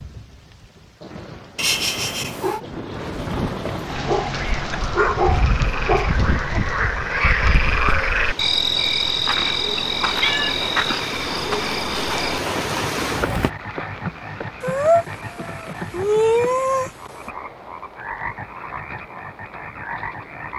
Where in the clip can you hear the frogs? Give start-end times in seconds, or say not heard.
4.0-20.5.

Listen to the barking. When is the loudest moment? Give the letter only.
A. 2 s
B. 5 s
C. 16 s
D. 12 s
B.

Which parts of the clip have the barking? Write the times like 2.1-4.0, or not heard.
3.9-6.6.